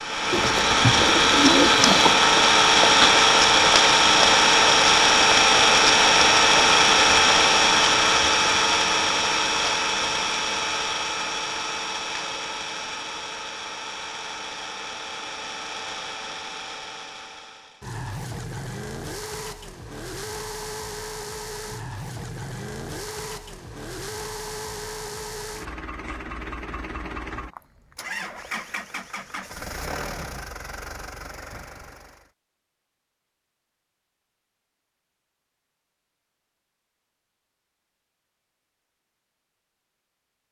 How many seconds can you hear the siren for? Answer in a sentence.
The siren can't be heard in this clip.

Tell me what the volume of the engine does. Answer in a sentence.
The loudness of the engine goes down.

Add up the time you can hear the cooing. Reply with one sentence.
The cooing can be heard for 2 seconds in total.